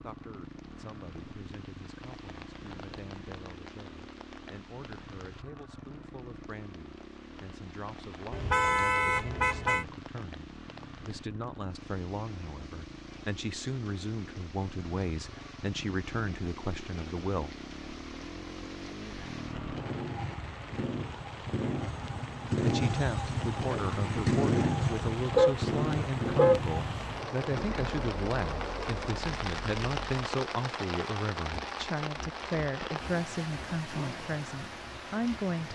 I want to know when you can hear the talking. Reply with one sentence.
The talking can be heard from 0.0 to 17.6 s and from 22.6 to 35.7 s.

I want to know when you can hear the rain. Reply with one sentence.
The rain can be heard from 0.0 to 35.7 s.